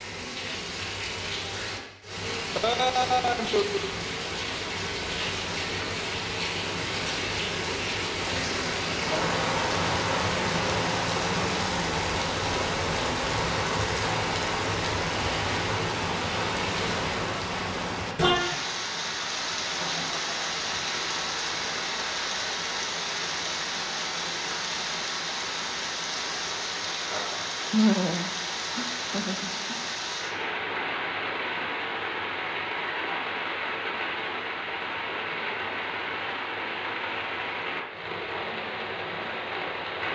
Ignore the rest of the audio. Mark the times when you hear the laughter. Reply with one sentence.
You can hear the laughter from 2.5 to 3.9 s, from 19.8 to 20.9 s and from 27.7 to 29.8 s.